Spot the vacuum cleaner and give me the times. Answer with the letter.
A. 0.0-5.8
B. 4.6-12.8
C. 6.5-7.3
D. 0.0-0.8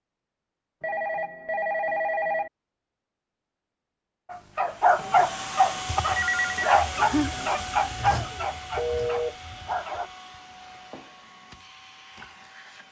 B.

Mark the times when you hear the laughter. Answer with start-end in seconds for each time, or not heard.
6.5-7.3.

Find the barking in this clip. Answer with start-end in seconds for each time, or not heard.
4.3-10.1.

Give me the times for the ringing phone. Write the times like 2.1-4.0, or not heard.
0.8-2.5, 5.0-6.7, 8.8-9.3.